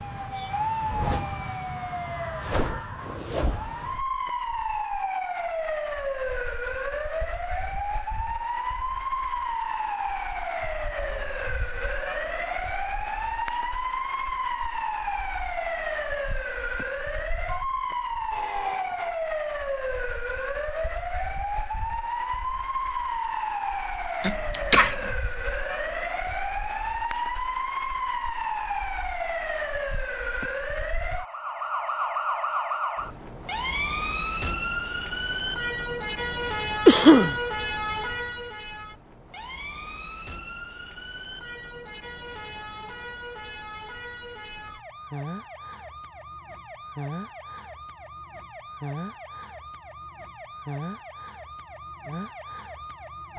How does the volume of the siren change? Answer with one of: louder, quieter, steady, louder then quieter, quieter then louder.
quieter.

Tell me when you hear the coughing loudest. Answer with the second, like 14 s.
37 s.